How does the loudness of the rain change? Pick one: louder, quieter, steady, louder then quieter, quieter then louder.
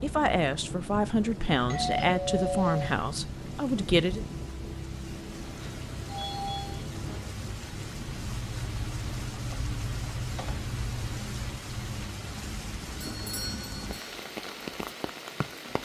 steady.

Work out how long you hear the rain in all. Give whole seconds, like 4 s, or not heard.
16 s.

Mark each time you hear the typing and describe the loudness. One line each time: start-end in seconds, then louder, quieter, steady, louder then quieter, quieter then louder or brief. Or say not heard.
8.1-12.1 steady.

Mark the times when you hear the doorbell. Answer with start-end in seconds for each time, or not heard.
1.7-3.0, 5.6-6.8, 13.0-14.2.